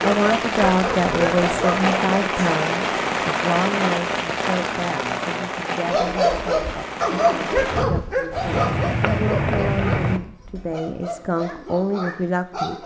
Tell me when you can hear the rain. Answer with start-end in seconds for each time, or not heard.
0.0-10.2.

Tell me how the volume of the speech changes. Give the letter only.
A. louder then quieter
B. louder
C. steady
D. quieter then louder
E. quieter
D.